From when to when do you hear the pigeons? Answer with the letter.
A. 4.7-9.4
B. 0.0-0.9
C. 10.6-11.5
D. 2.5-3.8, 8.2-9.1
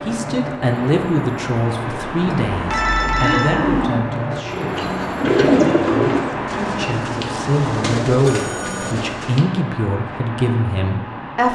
A.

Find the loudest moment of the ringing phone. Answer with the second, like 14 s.
3 s.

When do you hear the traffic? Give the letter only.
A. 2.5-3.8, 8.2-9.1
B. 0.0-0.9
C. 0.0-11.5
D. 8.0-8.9
C.